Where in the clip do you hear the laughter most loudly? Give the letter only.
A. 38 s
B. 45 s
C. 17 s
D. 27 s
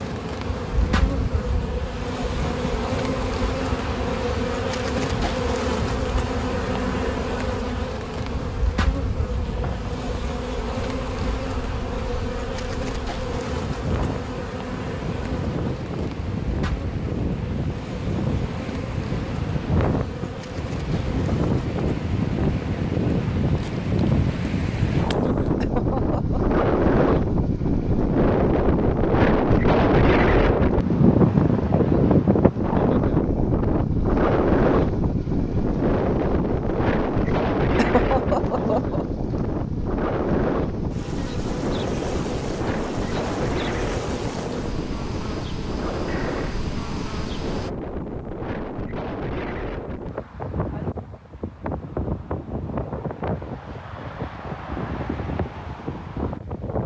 A.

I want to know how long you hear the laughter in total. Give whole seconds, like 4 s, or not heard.
2 s.